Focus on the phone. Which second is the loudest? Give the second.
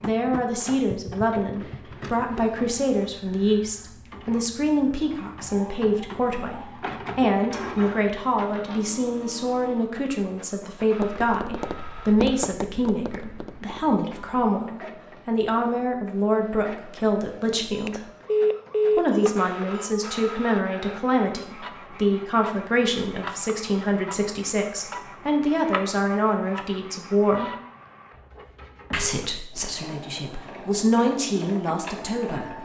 19 s.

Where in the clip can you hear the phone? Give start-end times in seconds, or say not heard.
17.7-20.1.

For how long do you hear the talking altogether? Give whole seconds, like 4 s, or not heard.
30 s.